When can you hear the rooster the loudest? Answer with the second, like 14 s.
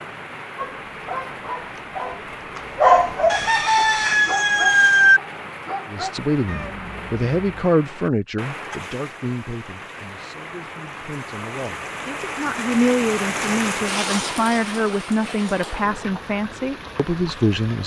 5 s.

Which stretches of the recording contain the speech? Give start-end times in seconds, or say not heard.
5.8-17.8.